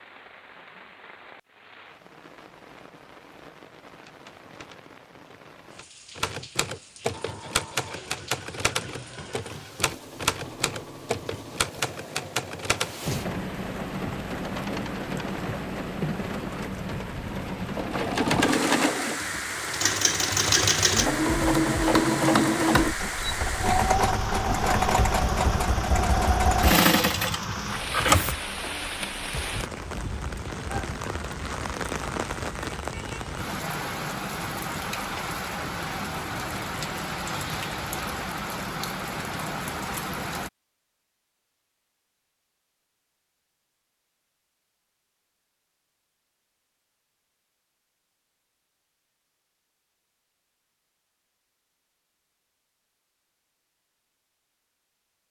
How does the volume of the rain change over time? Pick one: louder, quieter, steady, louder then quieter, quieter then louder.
louder.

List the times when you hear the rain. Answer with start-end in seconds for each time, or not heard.
0.0-40.5.